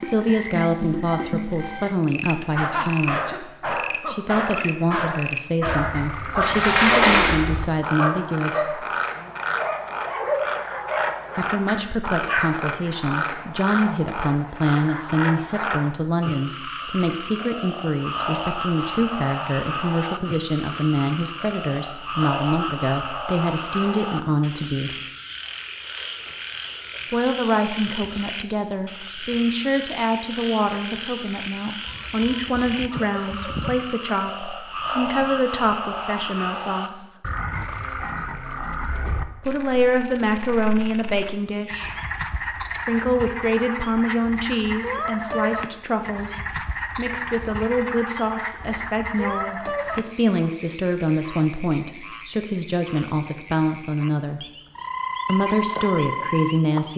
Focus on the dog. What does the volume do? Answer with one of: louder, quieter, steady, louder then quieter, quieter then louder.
steady.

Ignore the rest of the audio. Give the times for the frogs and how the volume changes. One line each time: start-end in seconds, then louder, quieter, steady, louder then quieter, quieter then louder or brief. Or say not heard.
0.0-56.9 steady.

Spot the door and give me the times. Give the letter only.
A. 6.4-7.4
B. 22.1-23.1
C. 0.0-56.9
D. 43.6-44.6
A.